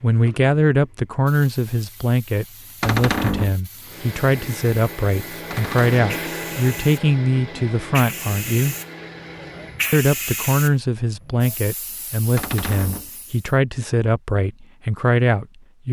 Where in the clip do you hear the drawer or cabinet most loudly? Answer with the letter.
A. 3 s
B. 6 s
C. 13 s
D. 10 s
A.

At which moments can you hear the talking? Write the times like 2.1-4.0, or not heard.
0.0-8.8, 9.9-15.8.